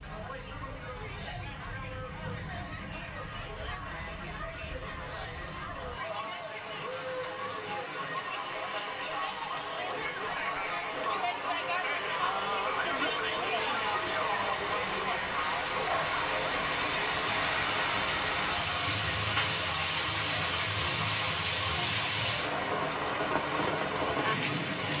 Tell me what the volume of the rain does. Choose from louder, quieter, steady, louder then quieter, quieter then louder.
louder.